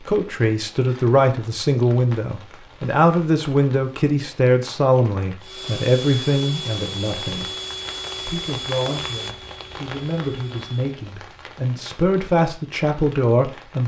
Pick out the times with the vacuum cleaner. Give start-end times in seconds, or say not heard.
5.4-11.0.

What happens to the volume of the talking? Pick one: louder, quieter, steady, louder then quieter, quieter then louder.
quieter then louder.